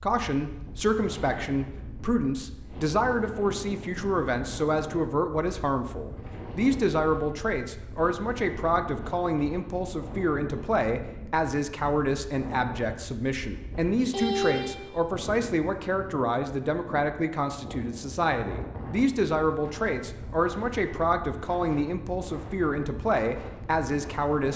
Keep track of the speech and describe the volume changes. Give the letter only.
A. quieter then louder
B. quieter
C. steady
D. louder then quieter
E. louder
C.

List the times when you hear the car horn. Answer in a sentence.
The car horn can be heard from 13.9 to 15.0 s.